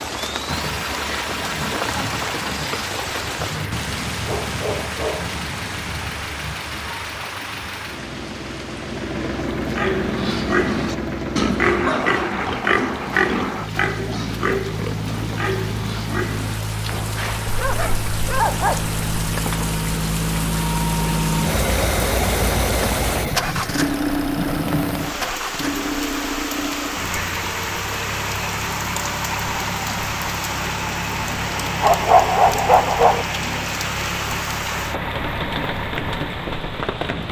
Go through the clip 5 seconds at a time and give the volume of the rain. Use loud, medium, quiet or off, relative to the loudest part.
loud, medium, medium, loud, loud, loud, loud, loud.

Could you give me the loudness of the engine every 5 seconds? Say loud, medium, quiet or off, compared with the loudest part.
medium, medium, medium, medium, loud, medium, medium, medium.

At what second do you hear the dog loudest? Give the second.
32 s.